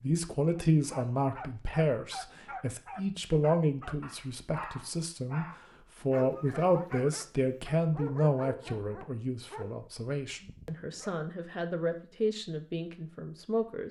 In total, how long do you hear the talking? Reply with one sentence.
You can hear the talking for 14 seconds altogether.